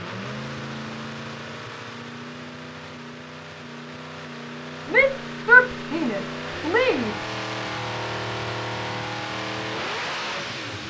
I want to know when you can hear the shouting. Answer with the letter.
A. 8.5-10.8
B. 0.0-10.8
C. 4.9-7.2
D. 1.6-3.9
C.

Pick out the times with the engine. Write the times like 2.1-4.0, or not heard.
0.0-10.8.